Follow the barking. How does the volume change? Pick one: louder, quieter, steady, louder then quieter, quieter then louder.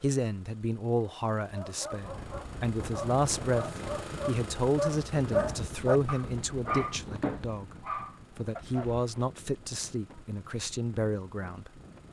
louder then quieter.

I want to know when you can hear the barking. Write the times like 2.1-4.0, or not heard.
1.5-9.1.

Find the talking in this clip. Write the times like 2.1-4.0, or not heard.
0.0-11.8.